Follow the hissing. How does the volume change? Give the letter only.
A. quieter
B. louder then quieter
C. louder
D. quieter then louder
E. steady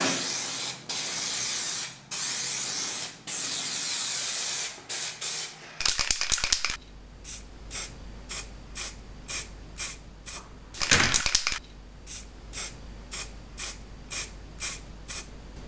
A.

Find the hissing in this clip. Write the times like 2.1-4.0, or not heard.
0.0-15.6.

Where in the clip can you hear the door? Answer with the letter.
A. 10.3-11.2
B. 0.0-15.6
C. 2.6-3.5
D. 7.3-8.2
A.